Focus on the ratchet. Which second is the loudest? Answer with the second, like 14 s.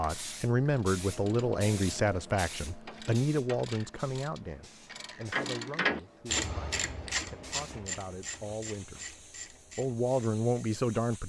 6 s.